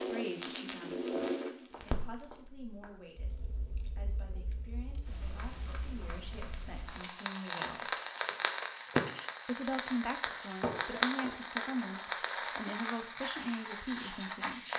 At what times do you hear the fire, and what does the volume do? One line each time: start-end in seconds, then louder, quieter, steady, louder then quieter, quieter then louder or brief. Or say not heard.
0.0-14.7 quieter then louder.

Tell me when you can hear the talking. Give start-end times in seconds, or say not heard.
0.1-8.0, 9.4-14.7.